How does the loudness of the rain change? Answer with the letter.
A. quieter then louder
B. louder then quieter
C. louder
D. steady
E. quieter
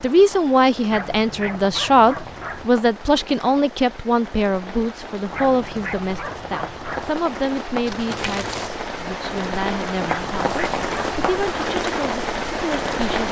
C.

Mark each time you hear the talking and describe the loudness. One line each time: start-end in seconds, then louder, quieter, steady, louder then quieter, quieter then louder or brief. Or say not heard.
0.0-13.2 quieter.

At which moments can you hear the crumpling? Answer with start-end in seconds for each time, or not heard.
7.8-8.8.